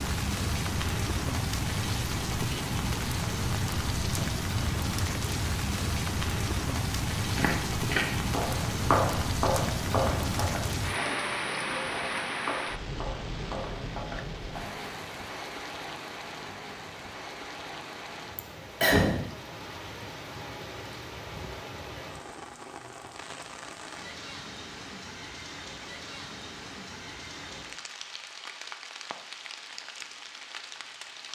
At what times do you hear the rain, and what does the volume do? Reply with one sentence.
You can hear the rain from 0.0 to 31.3 s, getting quieter.